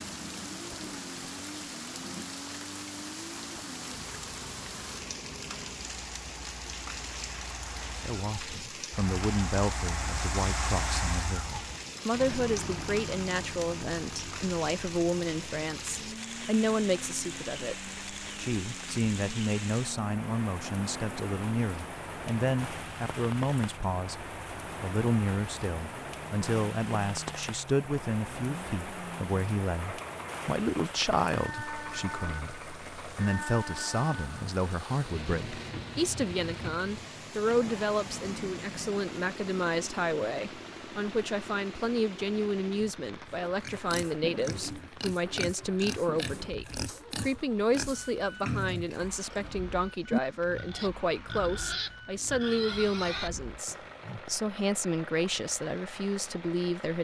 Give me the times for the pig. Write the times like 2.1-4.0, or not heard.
43.6-54.2.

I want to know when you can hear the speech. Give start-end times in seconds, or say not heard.
8.0-56.9.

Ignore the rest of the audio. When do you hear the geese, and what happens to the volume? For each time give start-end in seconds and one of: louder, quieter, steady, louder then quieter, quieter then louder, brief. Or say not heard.
not heard.